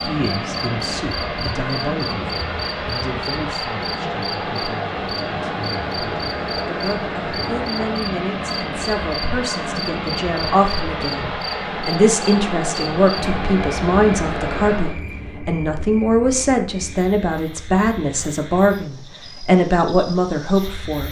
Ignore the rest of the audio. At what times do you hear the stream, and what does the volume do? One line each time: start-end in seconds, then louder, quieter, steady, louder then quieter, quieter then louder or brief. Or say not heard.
0.0-15.0 steady.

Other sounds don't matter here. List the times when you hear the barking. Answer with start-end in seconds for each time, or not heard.
not heard.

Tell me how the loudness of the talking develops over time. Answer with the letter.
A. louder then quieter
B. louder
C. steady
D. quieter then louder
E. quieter
B.